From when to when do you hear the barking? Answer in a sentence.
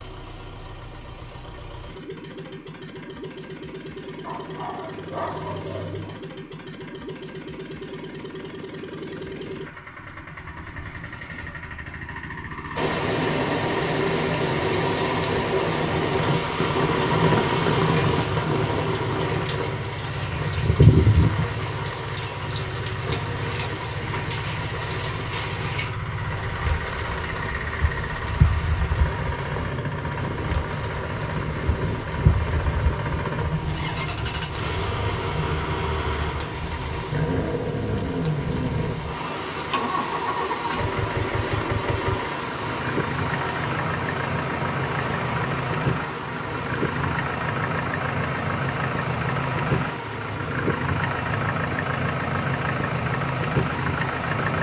The barking can be heard from 4.2 to 6.2 s.